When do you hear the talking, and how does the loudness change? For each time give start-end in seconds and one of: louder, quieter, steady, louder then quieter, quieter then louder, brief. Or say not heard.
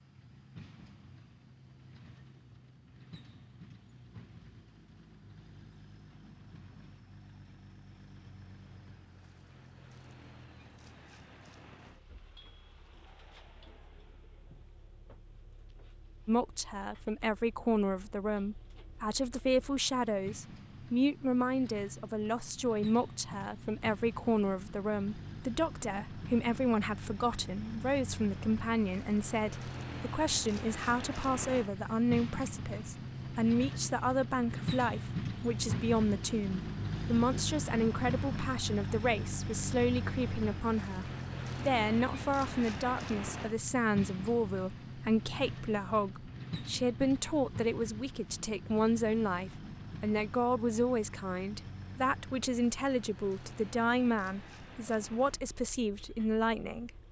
16.2-56.9 steady.